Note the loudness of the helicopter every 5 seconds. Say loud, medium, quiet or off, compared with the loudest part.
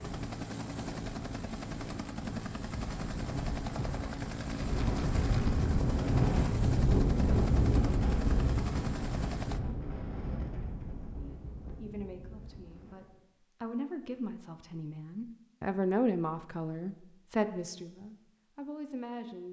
loud, loud, off, off.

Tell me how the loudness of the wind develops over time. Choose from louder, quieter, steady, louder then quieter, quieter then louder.
louder then quieter.